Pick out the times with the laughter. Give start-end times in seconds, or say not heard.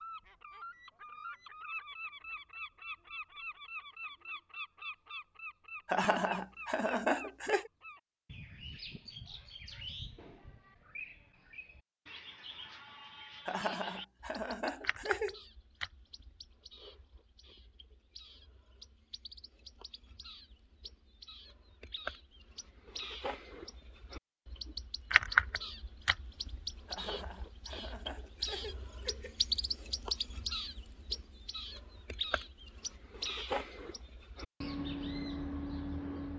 5.8-7.7, 13.4-15.4, 26.9-29.4.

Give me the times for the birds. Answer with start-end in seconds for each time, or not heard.
0.0-36.3.